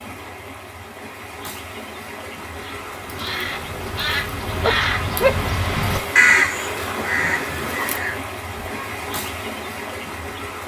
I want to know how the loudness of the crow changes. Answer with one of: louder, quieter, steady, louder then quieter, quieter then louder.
louder then quieter.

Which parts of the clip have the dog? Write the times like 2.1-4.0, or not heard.
4.6-6.0.